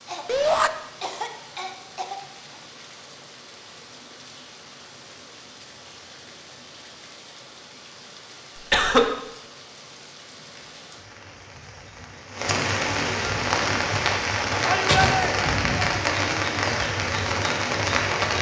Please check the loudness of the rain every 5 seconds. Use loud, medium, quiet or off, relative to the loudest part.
quiet, quiet, loud, loud.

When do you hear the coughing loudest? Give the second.
9 s.